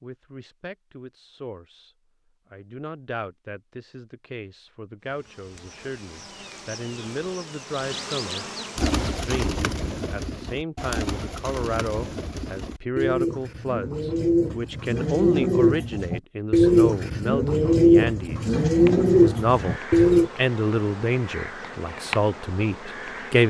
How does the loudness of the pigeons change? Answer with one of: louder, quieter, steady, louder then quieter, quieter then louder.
louder.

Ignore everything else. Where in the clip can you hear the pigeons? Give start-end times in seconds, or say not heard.
8.8-20.3.